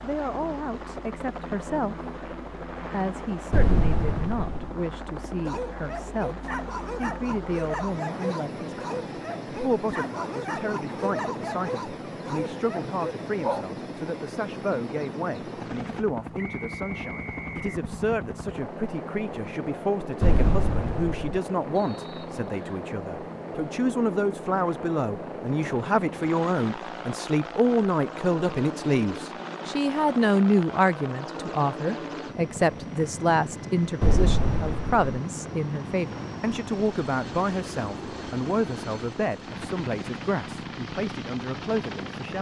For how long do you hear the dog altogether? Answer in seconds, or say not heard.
8 s.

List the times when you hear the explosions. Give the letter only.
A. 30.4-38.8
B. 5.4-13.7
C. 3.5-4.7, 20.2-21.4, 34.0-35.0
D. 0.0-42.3
C.